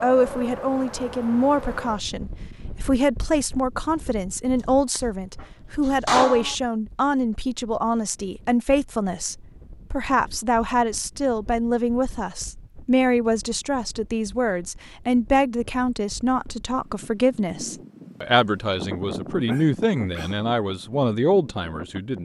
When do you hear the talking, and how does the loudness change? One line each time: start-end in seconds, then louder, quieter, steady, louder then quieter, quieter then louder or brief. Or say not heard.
0.0-22.1 steady.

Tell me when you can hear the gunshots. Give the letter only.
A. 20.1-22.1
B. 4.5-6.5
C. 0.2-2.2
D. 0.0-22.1
B.